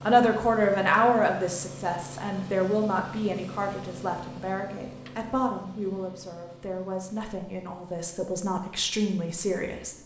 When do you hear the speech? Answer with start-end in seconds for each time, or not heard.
0.1-9.9.